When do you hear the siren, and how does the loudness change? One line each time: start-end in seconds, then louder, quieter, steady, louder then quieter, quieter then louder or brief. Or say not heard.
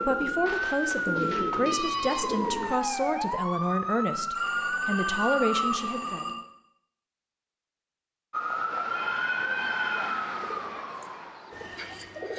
0.0-5.8 steady
8.3-12.3 quieter.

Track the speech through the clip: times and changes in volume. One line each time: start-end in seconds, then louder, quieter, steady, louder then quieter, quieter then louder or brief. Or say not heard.
0.0-6.2 steady.